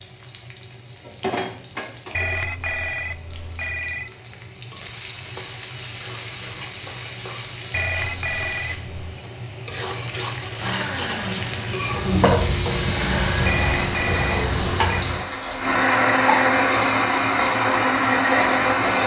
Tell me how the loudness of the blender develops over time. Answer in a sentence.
The loudness of the blender goes up.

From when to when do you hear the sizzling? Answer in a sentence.
You can hear the sizzling from 0.0 to 19.0 s.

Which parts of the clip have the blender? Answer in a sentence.
The blender can be heard from 10.6 to 19.0 s.